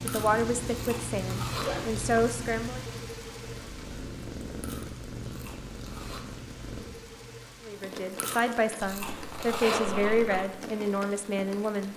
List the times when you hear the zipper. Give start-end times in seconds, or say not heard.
1.6-2.4, 8.8-10.4.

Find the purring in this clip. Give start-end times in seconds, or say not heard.
3.4-6.9.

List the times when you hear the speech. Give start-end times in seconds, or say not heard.
0.0-2.9, 7.7-11.9.